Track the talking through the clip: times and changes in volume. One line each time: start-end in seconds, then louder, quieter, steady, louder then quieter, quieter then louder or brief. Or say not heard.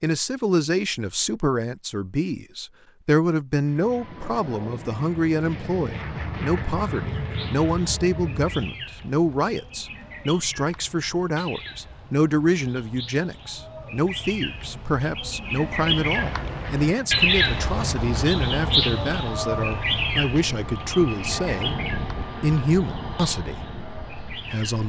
0.0-24.8 steady.